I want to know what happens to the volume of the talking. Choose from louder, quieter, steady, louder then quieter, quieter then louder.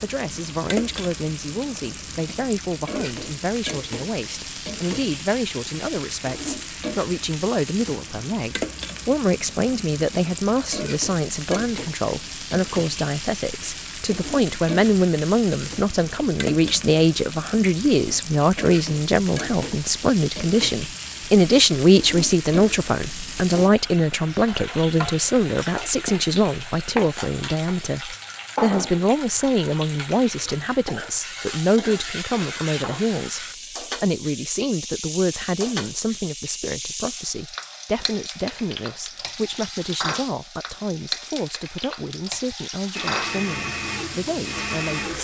louder then quieter.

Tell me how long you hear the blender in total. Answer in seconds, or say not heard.
2 s.